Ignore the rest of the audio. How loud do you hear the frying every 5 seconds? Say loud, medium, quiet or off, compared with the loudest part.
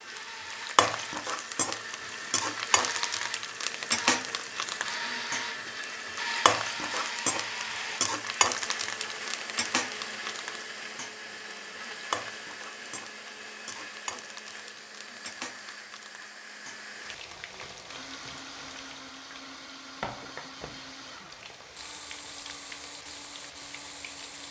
loud, loud, medium, quiet, quiet.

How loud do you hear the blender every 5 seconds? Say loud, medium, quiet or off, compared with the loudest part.
loud, loud, medium, medium, medium.